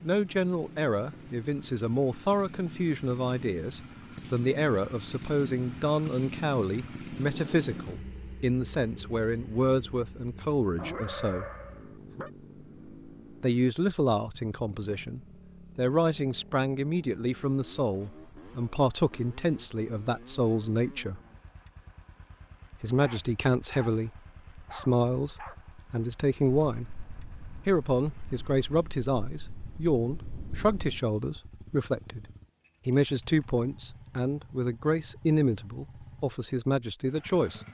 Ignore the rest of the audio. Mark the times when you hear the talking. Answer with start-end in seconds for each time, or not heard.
0.0-11.4, 13.4-21.2, 22.8-27.0, 27.6-32.2, 32.9-37.6.